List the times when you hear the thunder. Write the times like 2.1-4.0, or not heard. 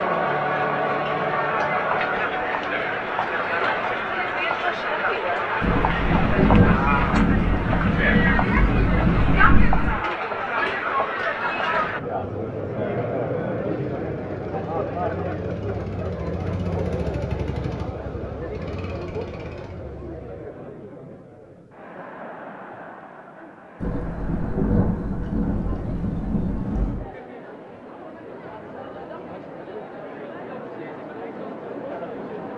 5.6-9.9, 23.8-27.0.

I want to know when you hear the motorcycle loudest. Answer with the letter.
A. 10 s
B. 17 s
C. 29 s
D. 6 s
B.